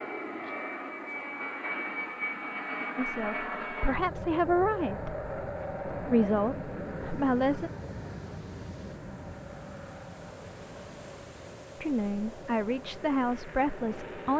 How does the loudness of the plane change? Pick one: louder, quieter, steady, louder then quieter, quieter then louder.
quieter.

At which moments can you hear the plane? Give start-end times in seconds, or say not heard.
0.0-14.3.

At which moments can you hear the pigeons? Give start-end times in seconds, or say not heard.
not heard.